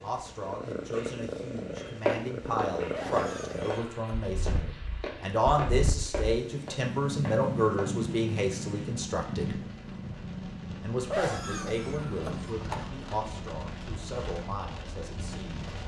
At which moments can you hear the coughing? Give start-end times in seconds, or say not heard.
2.9-4.0, 11.1-12.9.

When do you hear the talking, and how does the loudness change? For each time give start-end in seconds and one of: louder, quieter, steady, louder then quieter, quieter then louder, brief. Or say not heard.
0.0-9.6 louder
10.8-15.8 quieter.